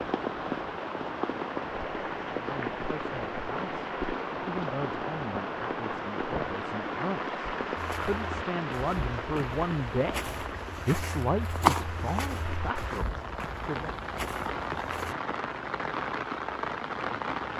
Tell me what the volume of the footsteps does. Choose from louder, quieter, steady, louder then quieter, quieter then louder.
louder then quieter.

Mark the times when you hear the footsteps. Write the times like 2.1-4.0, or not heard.
7.8-15.2.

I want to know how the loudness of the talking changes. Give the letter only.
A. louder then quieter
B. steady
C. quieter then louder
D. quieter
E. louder
A.